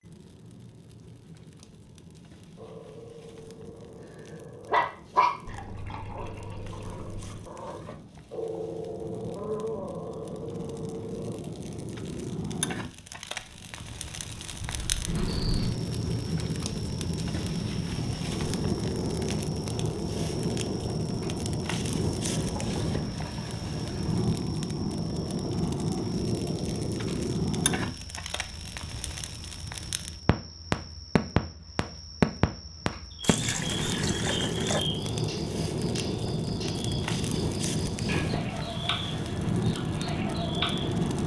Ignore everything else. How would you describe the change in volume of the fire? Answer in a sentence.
The volume of the fire goes up.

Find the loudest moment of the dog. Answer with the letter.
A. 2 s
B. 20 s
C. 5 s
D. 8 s
C.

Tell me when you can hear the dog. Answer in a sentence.
The dog can be heard from 2.5 to 5.3 s and from 6.2 to 11.4 s.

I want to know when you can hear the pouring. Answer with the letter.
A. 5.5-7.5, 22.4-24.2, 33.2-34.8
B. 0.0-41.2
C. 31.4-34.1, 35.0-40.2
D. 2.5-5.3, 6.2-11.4
A.